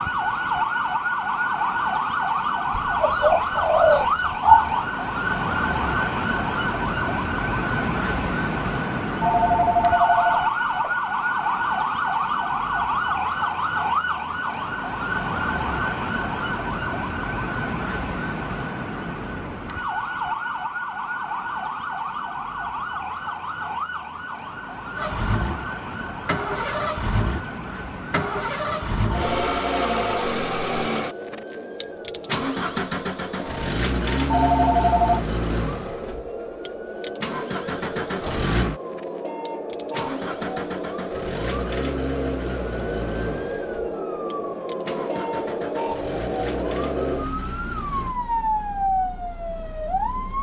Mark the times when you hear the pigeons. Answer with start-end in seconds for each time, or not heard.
2.7-4.8.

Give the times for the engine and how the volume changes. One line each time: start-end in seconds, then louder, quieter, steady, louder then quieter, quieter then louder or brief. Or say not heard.
24.9-48.1 quieter.